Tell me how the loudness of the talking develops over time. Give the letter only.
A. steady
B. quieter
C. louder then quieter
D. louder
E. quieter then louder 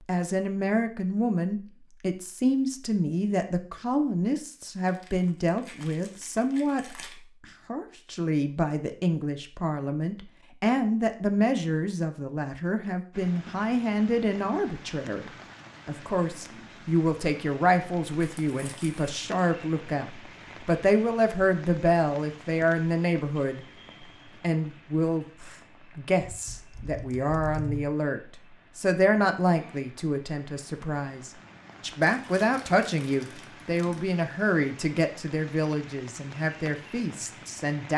A.